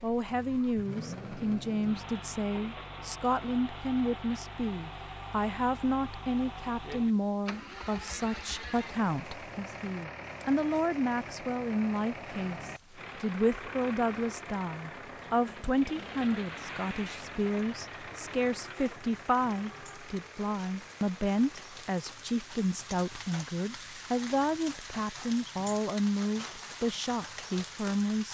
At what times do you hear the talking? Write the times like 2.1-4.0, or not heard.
0.0-28.2.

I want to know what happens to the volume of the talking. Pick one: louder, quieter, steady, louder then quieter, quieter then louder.
steady.